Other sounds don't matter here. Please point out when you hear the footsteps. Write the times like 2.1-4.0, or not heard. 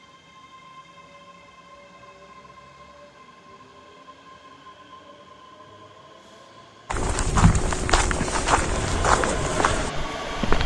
6.9-10.6.